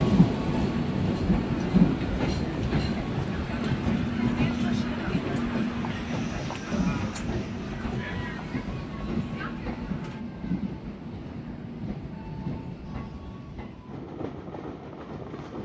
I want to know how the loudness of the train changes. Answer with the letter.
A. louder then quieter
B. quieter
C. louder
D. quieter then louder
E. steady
B.